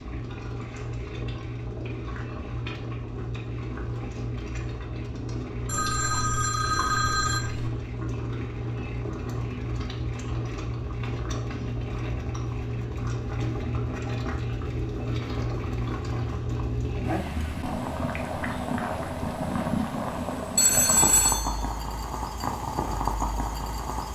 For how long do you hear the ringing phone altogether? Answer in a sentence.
The ringing phone can be heard for 3 seconds in total.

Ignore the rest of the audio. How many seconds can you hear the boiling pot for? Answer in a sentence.
You can hear the boiling pot for 24 seconds altogether.